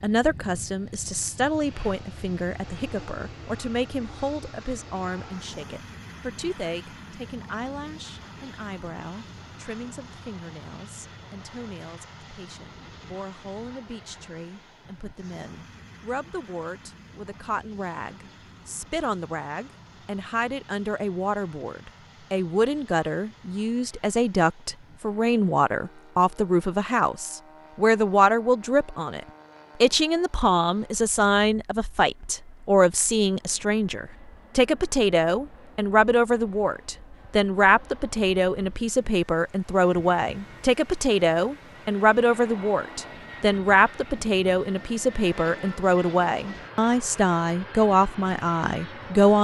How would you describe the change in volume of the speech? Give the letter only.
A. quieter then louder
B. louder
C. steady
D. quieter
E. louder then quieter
A.